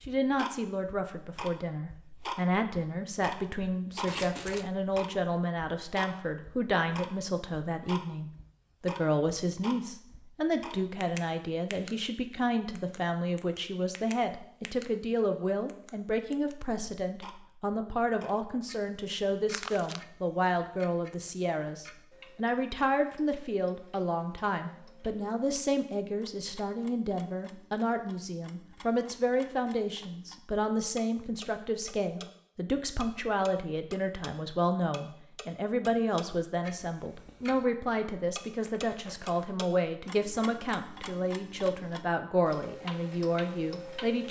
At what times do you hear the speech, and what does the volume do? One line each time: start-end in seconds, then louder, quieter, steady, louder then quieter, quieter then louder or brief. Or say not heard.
0.1-44.2 steady.